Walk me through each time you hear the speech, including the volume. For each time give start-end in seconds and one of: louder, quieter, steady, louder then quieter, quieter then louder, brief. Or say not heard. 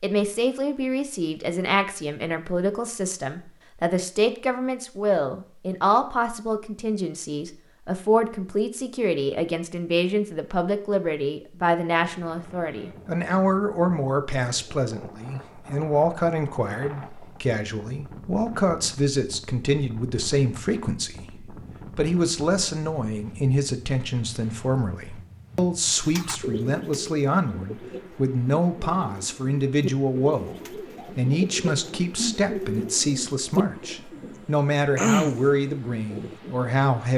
0.0-37.1 steady.